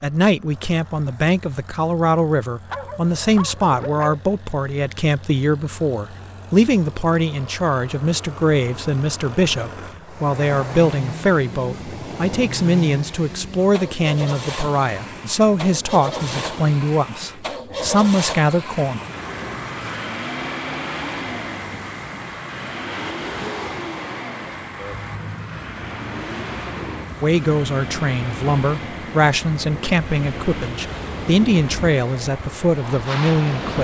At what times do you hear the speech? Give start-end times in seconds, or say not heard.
0.0-18.9, 27.2-33.7.